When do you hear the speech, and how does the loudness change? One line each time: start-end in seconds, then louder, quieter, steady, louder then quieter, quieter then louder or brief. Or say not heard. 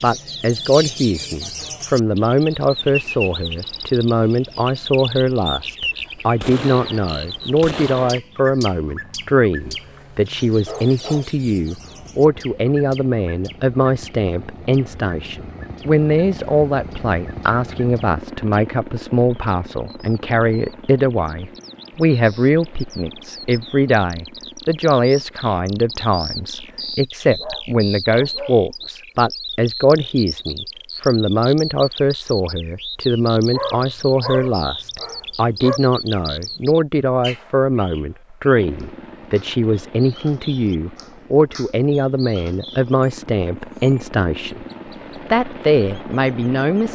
0.0-44.6 steady
45.3-46.9 brief.